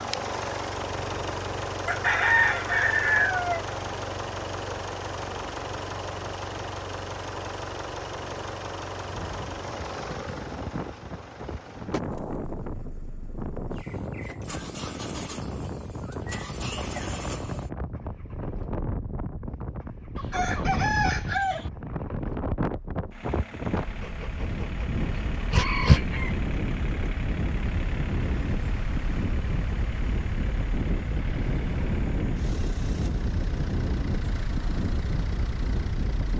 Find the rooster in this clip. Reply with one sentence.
The rooster can be heard from 1.9 to 3.6 s, from 20.1 to 21.7 s and from 25.6 to 26.4 s.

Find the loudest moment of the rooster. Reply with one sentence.
The loudest moment of the rooster is at 2 seconds.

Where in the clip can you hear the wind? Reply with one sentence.
You can hear the wind from 8.9 to 36.3 s.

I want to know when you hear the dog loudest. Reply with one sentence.
The loudest moment of the dog is at 26 seconds.